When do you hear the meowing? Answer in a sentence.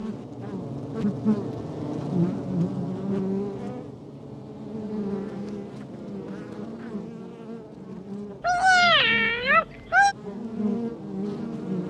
The meowing can be heard from 8.4 to 10.2 s.